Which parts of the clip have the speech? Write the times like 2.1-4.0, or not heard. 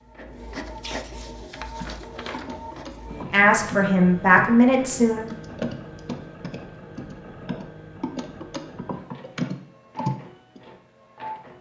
3.3-5.2.